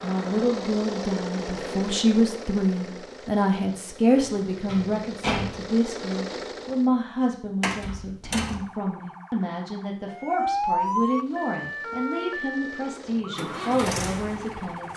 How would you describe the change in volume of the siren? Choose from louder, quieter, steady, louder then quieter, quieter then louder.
louder then quieter.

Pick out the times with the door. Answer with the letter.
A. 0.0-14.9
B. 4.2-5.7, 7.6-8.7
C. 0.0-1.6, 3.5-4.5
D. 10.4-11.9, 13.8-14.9
B.